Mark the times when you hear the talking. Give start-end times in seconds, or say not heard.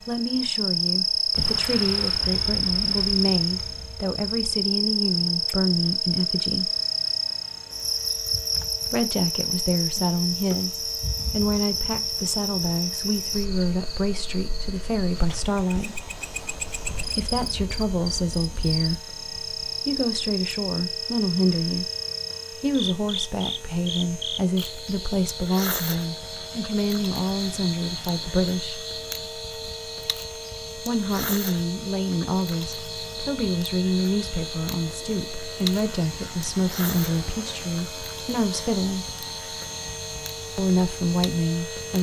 0.1-6.7, 8.8-16.1, 17.1-21.9, 22.6-28.9, 30.8-39.0, 40.5-41.9.